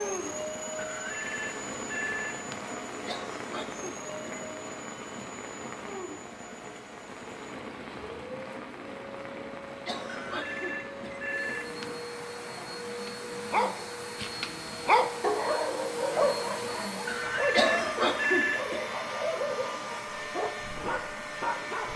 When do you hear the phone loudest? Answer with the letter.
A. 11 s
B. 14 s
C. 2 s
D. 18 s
D.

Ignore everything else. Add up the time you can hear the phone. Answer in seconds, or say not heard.
5 s.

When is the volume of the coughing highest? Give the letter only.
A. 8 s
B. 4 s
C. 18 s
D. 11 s
C.